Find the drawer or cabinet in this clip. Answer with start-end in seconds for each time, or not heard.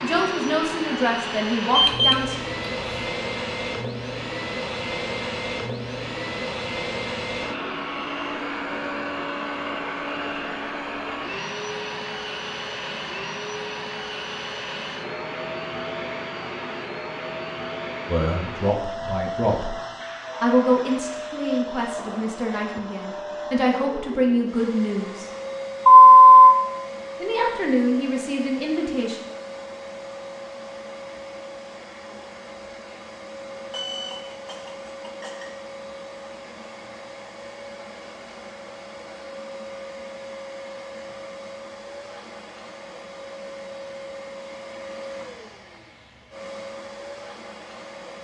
not heard.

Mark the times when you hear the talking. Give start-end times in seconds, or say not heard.
0.0-2.4, 18.1-19.8, 20.4-25.3, 27.2-29.2.